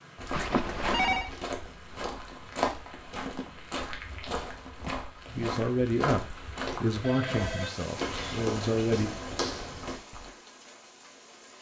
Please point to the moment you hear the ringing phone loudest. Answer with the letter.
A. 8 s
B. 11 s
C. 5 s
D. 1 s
D.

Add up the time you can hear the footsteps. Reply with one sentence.
The footsteps can be heard for 10 seconds in total.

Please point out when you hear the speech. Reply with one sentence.
You can hear the speech from 5.3 to 9.1 s.